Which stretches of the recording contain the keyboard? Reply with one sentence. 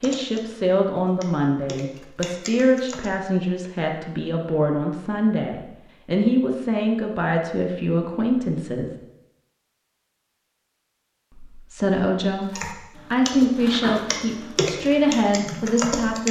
The keyboard can be heard from 0.0 to 3.1 s and from 12.5 to 16.2 s.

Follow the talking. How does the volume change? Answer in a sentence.
The loudness of the talking stays about the same.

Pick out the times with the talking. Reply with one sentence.
You can hear the talking from 0.0 to 8.9 s and from 11.3 to 16.2 s.